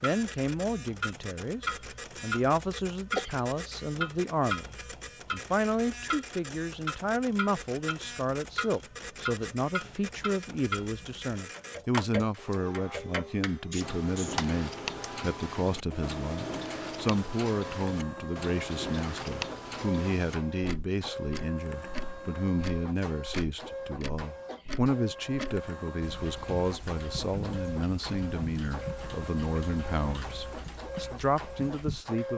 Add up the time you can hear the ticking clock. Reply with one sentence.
You can hear the ticking clock for 32 seconds altogether.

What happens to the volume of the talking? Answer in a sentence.
The loudness of the talking stays about the same.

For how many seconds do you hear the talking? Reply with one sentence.
You can hear the talking for 32 seconds altogether.